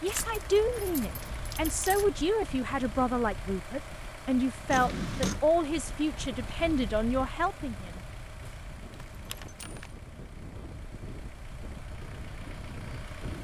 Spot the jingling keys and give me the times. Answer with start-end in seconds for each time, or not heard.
0.1-2.0, 4.7-5.4, 8.9-9.9.